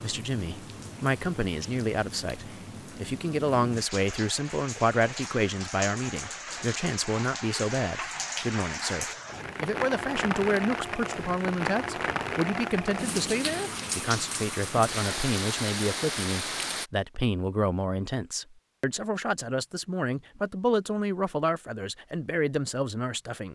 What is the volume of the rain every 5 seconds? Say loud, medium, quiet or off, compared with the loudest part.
medium, loud, loud, loud, off.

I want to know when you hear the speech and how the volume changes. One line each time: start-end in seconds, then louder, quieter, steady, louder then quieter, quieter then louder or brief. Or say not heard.
0.0-23.4 steady.